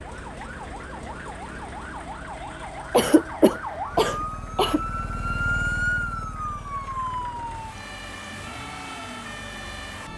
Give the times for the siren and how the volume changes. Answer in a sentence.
The siren can be heard from 0.0 to 10.1 s, getting louder then quieter.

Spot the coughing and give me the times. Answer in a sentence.
You can hear the coughing from 2.9 to 4.8 s.